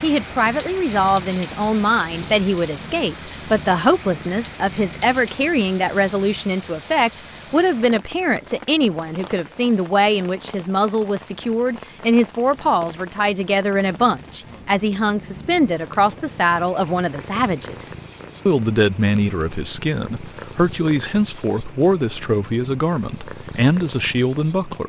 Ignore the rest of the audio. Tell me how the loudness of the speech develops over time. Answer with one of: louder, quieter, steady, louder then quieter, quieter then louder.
steady.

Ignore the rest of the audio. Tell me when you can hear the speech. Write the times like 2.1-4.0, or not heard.
0.0-24.8.